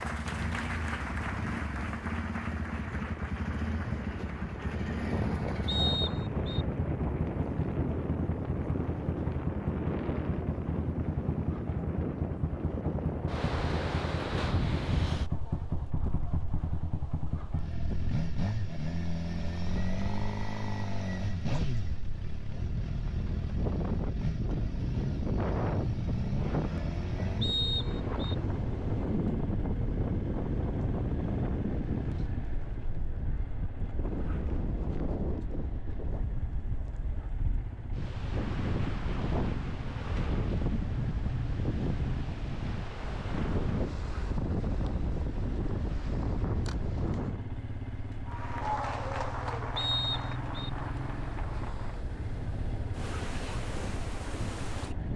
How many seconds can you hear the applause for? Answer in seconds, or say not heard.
11 s.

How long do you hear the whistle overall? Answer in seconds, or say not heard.
3 s.